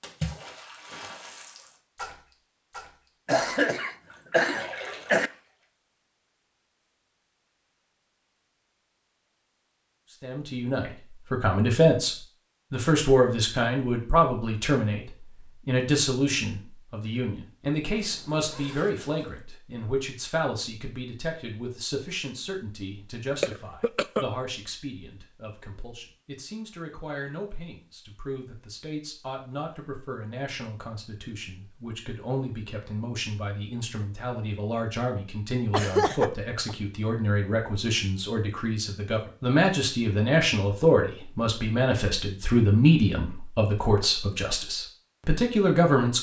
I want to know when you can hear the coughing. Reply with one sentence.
You can hear the coughing from 3.2 to 5.3 s, from 23.4 to 24.2 s and from 35.7 to 36.8 s.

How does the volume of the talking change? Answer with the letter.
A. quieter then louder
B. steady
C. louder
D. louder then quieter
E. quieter
A.